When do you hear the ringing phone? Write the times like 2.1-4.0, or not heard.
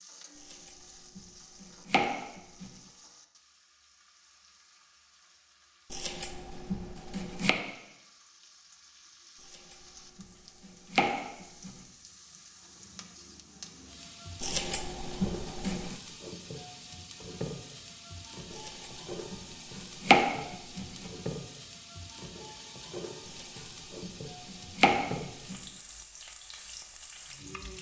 not heard.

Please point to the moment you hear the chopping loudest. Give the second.
20 s.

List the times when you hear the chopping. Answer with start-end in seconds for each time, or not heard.
0.3-2.7, 5.9-7.5, 9.4-11.8, 14.4-15.9, 18.5-21.1, 23.2-25.6.